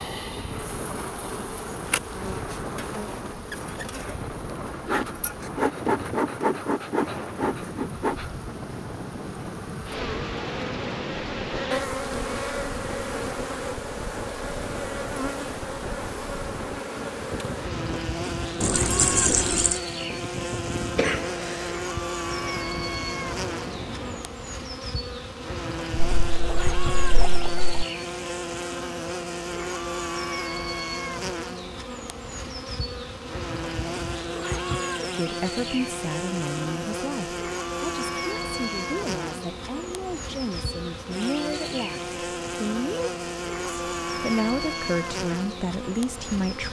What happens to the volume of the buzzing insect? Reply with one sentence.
The loudness of the buzzing insect stays about the same.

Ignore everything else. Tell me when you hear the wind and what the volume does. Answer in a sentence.
You can hear the wind from 0.0 to 24.4 s, at a steady volume.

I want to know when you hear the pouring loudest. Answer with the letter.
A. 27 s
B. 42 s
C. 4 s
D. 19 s
D.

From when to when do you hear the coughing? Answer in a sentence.
You can hear the coughing from 20.9 to 21.9 s.